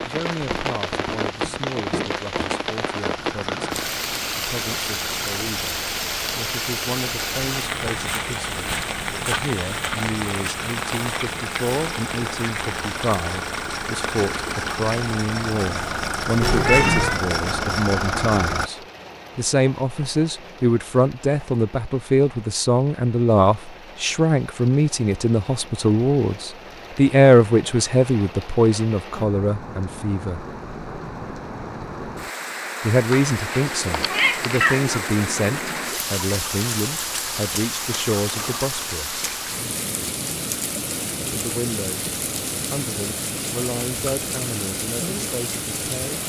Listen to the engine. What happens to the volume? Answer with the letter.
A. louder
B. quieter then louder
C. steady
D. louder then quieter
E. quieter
A.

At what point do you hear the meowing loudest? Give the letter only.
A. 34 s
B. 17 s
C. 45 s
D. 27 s
B.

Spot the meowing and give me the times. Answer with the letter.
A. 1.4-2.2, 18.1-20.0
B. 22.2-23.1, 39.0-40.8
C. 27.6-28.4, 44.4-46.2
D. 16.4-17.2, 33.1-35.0
D.